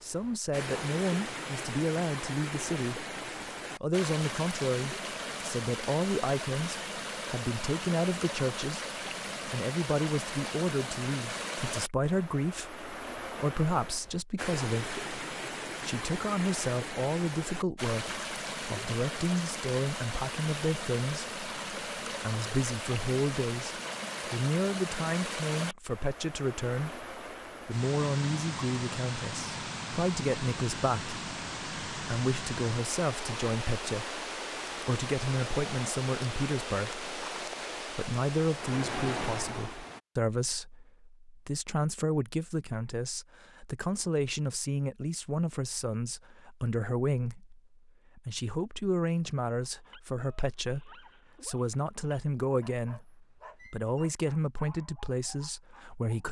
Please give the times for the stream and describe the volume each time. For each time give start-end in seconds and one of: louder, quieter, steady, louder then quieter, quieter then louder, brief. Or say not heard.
0.0-40.0 steady.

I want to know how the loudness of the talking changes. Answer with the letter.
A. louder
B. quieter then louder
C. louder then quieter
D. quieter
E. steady
E.